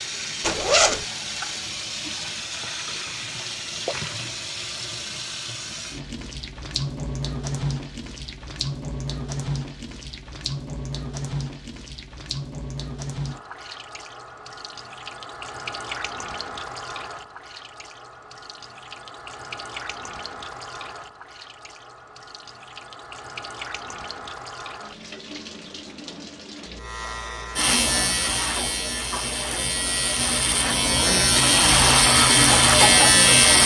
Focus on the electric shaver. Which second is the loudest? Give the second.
33 s.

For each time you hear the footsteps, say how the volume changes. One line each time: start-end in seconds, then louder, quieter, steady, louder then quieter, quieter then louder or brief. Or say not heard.
not heard.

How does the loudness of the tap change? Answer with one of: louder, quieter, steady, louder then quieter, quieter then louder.
quieter.